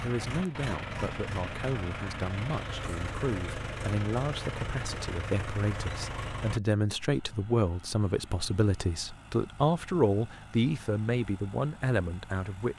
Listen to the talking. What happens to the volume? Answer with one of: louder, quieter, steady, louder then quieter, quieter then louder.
louder.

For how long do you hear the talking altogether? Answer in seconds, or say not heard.
13 s.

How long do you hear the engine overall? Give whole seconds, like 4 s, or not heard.
13 s.